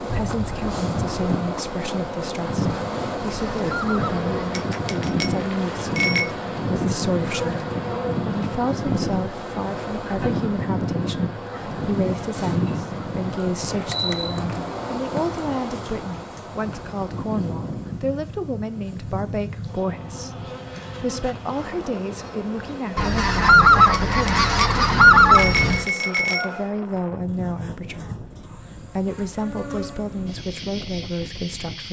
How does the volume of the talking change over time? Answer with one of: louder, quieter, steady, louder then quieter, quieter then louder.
steady.